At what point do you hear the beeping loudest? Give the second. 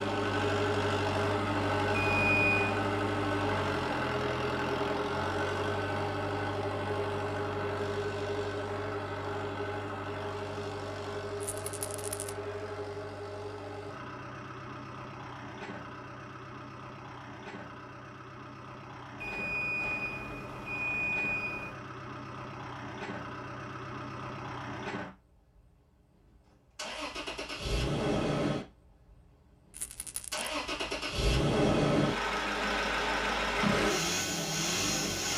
2 s.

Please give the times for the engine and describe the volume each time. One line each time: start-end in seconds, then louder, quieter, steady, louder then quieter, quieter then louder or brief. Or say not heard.
0.0-35.3 quieter then louder.